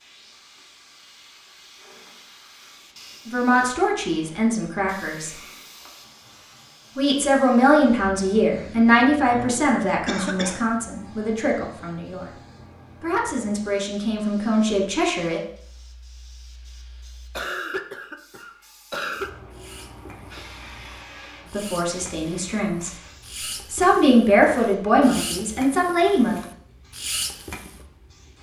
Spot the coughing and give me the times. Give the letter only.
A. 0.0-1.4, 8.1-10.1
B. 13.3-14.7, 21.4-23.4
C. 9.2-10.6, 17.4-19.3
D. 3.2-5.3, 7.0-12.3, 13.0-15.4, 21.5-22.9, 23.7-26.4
C.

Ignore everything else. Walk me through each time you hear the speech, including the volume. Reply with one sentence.
You can hear the speech briefly from 3.2 to 5.3 s; from 7.0 to 12.3 s, getting quieter; briefly from 13.0 to 15.4 s; briefly from 21.5 to 22.9 s; and briefly from 23.7 to 26.4 s.